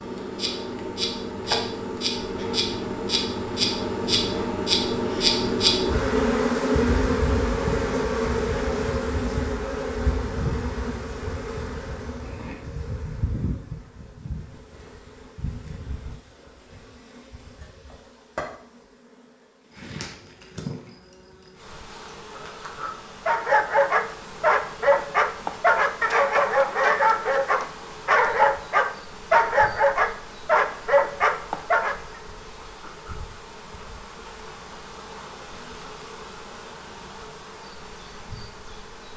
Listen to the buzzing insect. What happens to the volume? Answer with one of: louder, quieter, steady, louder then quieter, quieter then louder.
quieter.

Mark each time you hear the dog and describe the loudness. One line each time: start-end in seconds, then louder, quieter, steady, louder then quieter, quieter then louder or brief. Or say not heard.
23.2-32.0 steady.